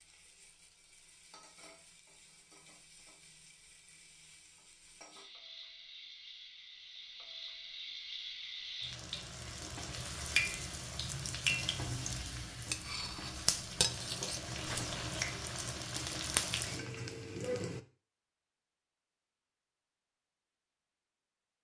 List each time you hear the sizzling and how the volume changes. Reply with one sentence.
The sizzling can be heard from 0.0 to 17.8 s, getting louder.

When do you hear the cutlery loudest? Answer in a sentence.
The volume of the cutlery peaks at 14 seconds.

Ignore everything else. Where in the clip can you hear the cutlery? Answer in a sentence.
The cutlery can be heard from 12.7 to 14.9 s.